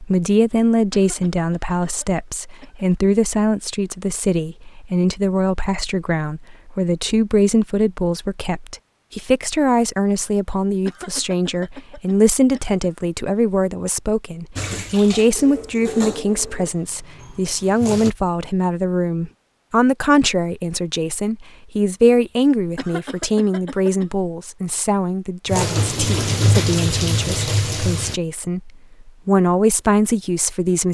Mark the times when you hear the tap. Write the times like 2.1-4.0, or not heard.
14.6-18.1, 25.4-28.2.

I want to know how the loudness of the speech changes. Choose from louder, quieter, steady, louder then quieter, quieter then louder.
steady.